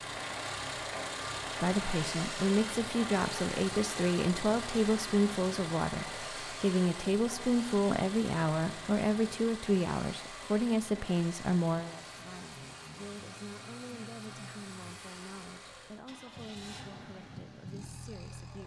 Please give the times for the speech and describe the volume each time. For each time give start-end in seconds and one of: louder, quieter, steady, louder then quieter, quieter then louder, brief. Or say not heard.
1.6-18.6 quieter.